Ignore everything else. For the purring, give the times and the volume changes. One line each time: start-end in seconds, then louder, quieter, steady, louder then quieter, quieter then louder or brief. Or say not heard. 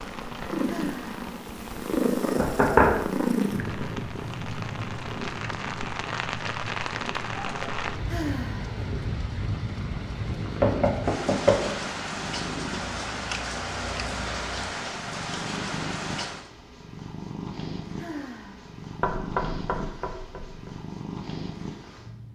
0.0-22.3 quieter.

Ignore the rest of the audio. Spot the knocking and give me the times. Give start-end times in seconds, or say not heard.
2.4-3.0, 10.6-11.8, 19.0-20.7.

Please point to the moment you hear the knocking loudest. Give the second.
3 s.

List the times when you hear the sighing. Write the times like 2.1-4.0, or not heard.
0.7-1.2, 8.1-8.8, 17.9-18.7.